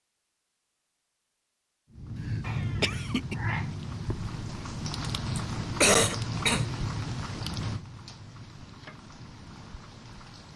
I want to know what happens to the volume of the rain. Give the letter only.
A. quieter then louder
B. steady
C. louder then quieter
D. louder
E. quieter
E.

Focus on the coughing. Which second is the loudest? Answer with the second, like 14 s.
6 s.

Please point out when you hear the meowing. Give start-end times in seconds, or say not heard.
2.4-3.8.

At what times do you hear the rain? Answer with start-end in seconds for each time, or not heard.
1.9-10.5.